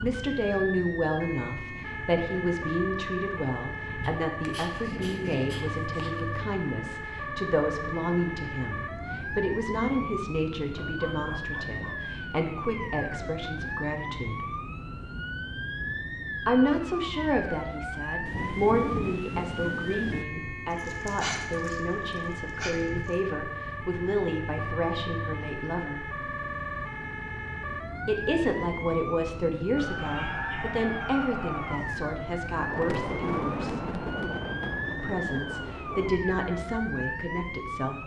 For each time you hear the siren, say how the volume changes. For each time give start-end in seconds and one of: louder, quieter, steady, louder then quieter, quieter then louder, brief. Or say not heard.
0.0-38.0 steady.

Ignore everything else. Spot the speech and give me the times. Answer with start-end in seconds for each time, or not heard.
0.0-14.4, 16.4-26.1, 28.1-33.8, 35.0-38.0.